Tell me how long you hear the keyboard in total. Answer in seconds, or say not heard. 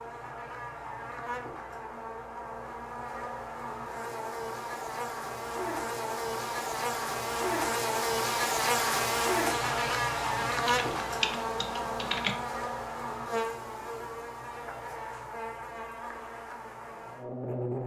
2 s.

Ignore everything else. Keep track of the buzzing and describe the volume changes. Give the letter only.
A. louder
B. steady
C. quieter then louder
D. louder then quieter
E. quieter
D.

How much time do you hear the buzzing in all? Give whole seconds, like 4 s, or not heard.
18 s.